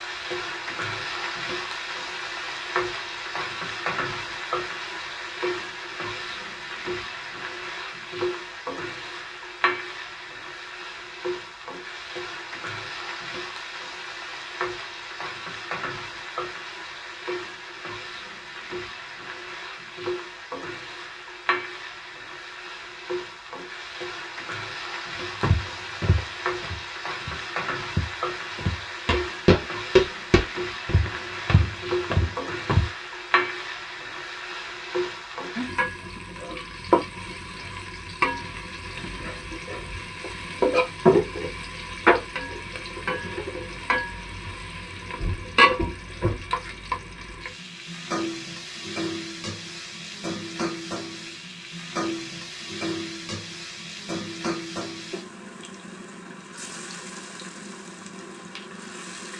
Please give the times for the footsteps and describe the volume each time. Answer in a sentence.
You can hear the footsteps from 25.4 to 32.9 s, getting louder then quieter.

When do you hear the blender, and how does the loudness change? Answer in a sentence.
The blender can't be heard in this clip.